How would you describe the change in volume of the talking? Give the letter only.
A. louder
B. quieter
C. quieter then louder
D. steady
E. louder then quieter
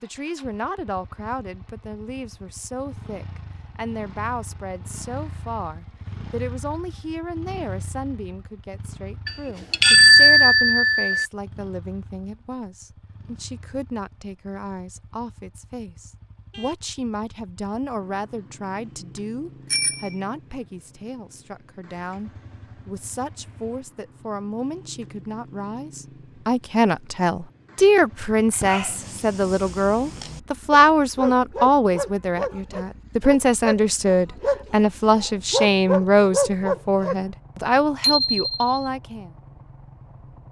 A.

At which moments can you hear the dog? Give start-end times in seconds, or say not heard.
28.5-37.1.